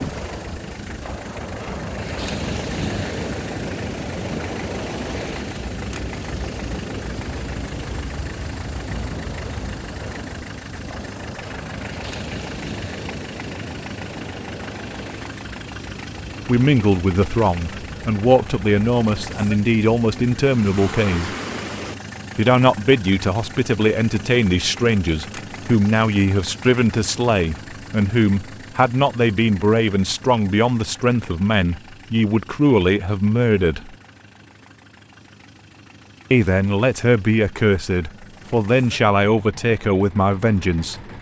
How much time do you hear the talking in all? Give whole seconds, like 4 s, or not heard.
21 s.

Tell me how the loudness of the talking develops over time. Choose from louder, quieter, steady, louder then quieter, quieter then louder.
steady.